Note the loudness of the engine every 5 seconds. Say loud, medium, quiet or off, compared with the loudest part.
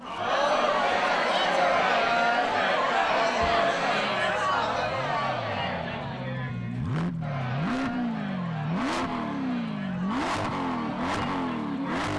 quiet, loud, loud.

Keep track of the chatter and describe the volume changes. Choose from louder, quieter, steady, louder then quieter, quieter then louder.
quieter.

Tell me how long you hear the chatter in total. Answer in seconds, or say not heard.
12 s.